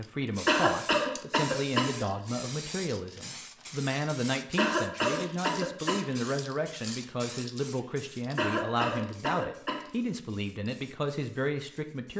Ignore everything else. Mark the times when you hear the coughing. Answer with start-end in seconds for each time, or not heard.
0.2-2.1, 4.5-6.2, 8.3-9.8.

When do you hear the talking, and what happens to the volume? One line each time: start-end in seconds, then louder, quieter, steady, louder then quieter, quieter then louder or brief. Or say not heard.
0.0-12.1 steady.